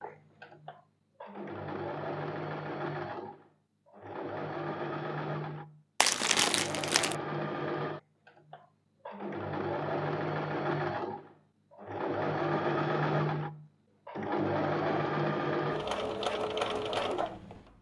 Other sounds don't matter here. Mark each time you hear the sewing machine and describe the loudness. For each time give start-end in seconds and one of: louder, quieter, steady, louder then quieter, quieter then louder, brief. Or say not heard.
0.0-17.7 louder.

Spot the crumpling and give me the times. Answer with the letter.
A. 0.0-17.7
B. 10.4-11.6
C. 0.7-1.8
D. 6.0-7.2
D.